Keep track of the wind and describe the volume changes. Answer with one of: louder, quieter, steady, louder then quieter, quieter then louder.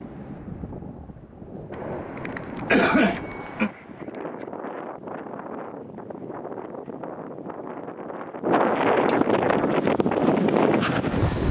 louder.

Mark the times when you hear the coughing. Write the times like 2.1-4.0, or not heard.
2.7-3.7.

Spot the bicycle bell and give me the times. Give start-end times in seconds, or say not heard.
1.7-3.8, 9.1-9.6.